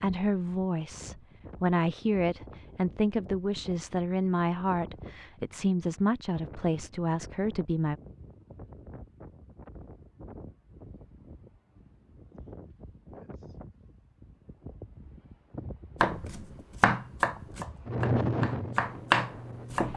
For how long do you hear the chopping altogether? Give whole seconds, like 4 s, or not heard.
4 s.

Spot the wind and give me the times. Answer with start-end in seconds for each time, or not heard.
0.0-19.9.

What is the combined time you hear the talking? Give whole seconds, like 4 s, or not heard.
8 s.